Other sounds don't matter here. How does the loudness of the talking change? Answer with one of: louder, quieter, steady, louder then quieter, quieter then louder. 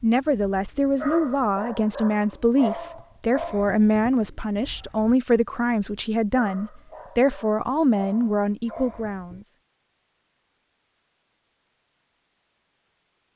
steady.